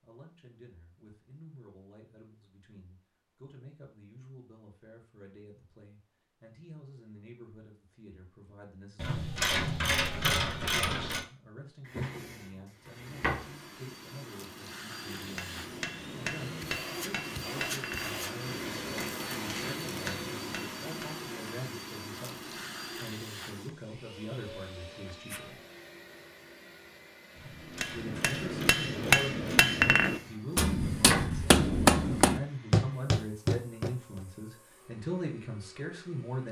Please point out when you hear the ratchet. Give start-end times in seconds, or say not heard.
8.9-11.2, 27.4-29.7.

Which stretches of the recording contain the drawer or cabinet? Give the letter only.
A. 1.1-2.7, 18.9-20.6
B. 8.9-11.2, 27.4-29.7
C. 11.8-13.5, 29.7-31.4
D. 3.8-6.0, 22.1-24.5
C.